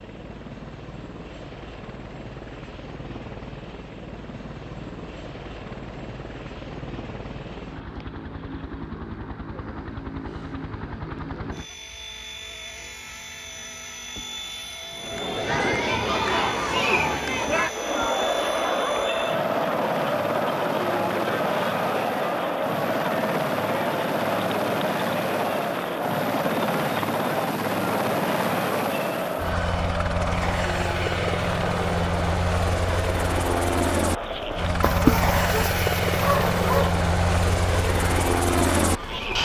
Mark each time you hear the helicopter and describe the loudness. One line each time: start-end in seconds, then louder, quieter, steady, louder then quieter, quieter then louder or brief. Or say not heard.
0.0-39.4 louder.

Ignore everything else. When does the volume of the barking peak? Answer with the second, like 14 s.
35 s.